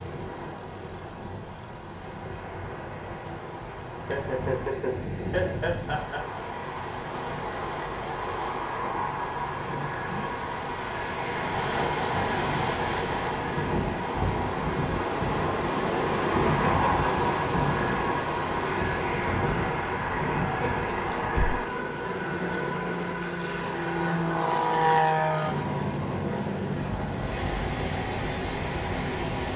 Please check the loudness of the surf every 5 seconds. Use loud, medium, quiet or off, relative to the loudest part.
medium, medium, loud, loud, medium, medium.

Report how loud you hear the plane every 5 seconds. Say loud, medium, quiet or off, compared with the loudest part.
quiet, medium, medium, loud, loud, loud.